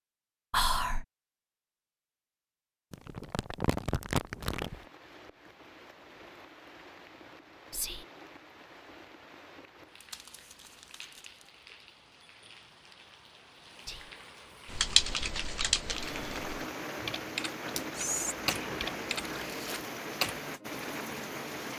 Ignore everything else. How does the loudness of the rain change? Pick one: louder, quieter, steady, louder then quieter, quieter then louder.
louder.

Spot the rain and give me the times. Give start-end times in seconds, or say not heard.
4.5-21.7.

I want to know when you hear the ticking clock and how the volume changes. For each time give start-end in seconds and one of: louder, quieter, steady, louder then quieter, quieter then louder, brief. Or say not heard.
not heard.